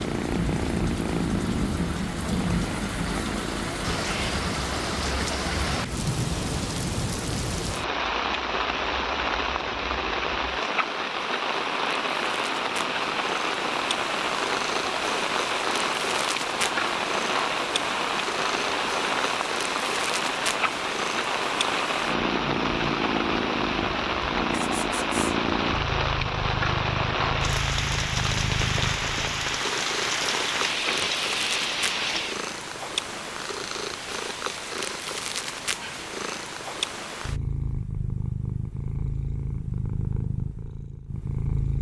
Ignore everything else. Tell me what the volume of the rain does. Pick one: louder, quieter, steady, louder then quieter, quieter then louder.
steady.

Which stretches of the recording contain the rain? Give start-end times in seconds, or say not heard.
0.0-32.5.